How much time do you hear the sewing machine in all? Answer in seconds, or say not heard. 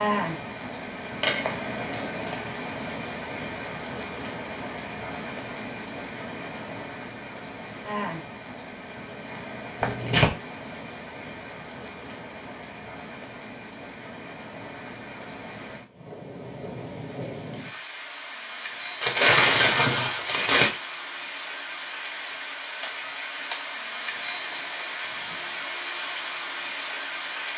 not heard.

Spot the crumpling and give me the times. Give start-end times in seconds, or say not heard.
1.2-2.5, 9.8-10.3, 19.0-20.7.